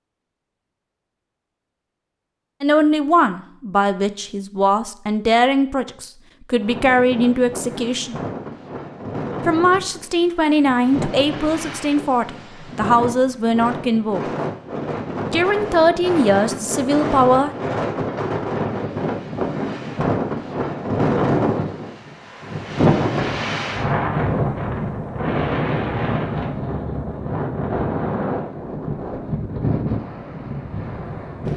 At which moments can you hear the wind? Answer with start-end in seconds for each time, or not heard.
6.5-31.5.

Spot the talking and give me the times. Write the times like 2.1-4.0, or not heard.
2.6-8.2, 9.4-14.2, 15.3-17.5.